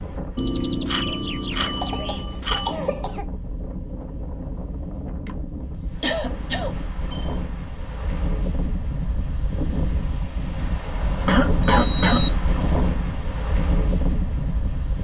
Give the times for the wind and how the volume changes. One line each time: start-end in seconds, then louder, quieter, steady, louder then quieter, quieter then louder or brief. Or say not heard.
0.0-14.9 louder.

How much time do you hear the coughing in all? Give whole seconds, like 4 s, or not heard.
4 s.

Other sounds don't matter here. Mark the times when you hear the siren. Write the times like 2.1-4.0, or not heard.
not heard.